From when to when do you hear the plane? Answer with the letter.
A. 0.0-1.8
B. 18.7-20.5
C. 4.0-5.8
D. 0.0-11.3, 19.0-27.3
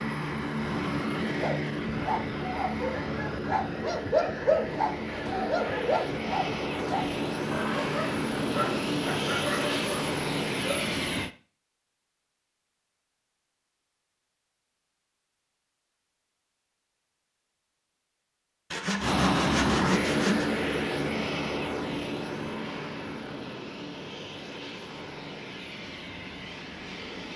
D.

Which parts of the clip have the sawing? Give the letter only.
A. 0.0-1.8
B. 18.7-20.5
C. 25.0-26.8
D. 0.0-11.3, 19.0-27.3
B.